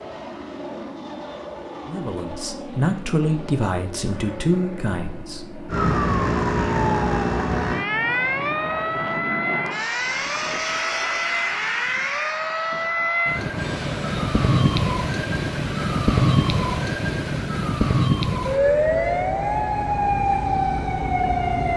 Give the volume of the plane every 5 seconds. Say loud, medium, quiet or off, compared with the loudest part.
medium, loud, loud, medium, off.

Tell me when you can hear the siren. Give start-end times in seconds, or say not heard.
5.7-21.7.